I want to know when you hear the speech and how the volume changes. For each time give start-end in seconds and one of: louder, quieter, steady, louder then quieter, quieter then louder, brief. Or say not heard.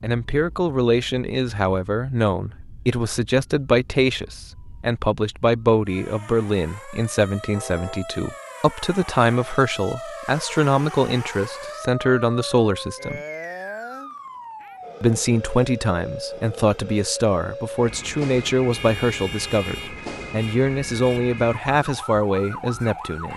0.0-13.2 steady
15.0-23.3 steady.